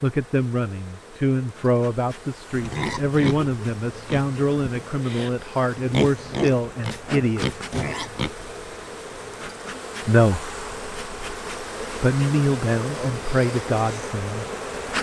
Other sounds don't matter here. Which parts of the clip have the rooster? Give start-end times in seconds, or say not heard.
not heard.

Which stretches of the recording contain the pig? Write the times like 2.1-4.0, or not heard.
2.5-8.3.